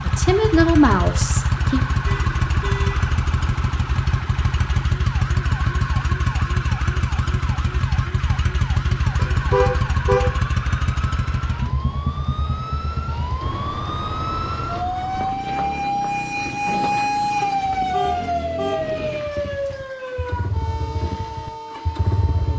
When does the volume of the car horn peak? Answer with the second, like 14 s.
10 s.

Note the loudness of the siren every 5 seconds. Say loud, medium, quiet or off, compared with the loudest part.
quiet, quiet, medium, loud, medium.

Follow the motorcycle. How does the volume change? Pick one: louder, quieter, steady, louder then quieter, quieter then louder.
quieter.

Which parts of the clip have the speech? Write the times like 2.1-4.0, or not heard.
0.0-1.9.